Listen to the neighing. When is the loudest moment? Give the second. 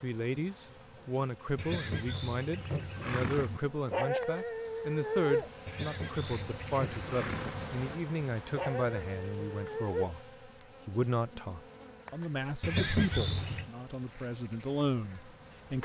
13 s.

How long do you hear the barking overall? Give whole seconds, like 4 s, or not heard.
3 s.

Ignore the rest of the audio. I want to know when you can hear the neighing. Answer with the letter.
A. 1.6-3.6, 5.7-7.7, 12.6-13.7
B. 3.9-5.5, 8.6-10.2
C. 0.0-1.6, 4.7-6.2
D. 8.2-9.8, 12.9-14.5
A.